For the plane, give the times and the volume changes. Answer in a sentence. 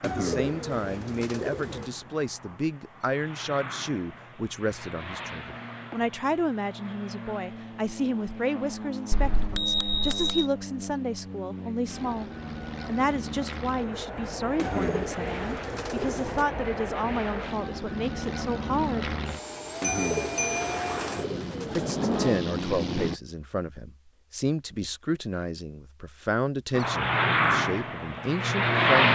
You can hear the plane from 0.0 to 23.2 s, getting louder; and briefly from 26.8 to 29.1 s.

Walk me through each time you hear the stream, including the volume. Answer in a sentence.
The stream can't be heard in this clip.